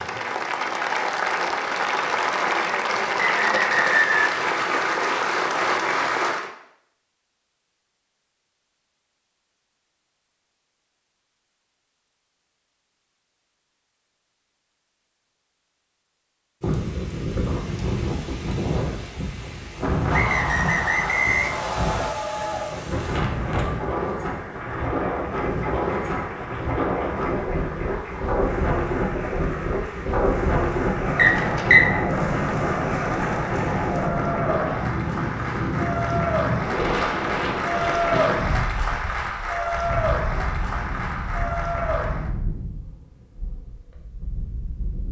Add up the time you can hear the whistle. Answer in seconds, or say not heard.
4 s.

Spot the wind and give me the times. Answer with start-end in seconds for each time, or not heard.
16.6-45.0.